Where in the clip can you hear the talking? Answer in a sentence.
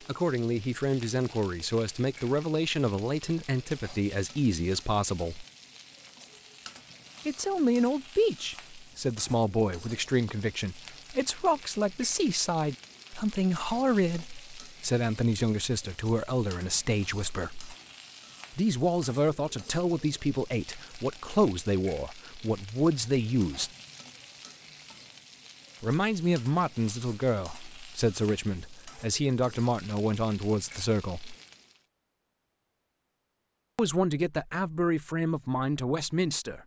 The talking can be heard from 0.1 to 5.5 s, from 7.2 to 17.7 s, from 18.5 to 23.7 s, from 25.8 to 31.4 s and from 33.8 to 36.6 s.